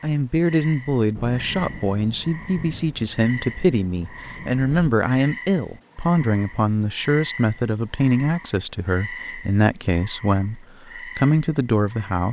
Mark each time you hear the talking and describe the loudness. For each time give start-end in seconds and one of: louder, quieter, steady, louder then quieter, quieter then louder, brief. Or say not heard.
0.0-12.2 steady.